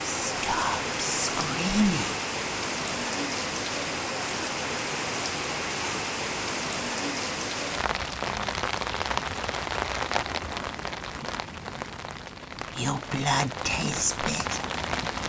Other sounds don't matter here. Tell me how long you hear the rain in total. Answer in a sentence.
The rain can be heard for 15 seconds in total.